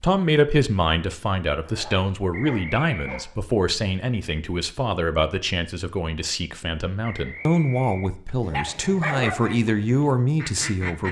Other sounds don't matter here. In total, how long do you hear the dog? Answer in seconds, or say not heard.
3 s.